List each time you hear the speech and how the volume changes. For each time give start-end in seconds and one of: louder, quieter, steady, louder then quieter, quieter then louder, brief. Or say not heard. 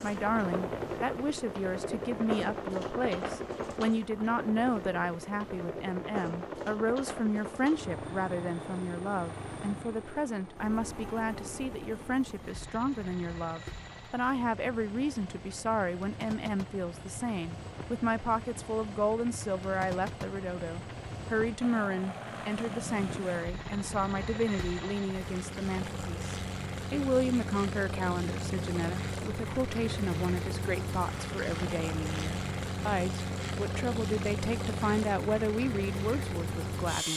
0.0-37.1 steady.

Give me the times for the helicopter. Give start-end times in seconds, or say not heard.
0.0-37.1.